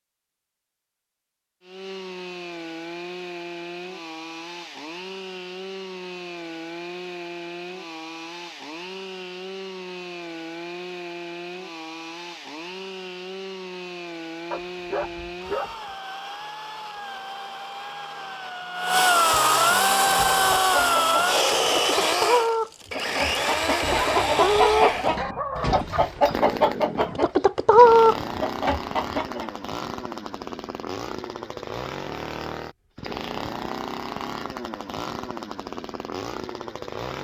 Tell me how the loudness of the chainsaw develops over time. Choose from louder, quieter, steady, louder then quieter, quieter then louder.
louder then quieter.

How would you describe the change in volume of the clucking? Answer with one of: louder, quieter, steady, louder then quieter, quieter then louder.
louder.